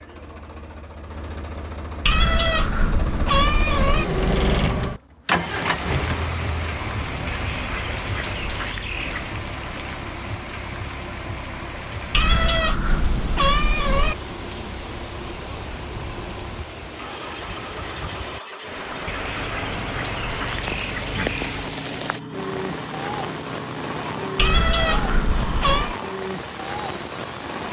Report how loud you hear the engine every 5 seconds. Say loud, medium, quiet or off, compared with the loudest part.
loud, loud, medium, medium, medium, medium.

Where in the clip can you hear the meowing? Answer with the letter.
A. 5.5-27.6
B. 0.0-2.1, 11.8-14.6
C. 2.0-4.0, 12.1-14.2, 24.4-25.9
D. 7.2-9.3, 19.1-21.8
C.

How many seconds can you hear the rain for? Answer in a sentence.
The rain can be heard for 22 seconds in total.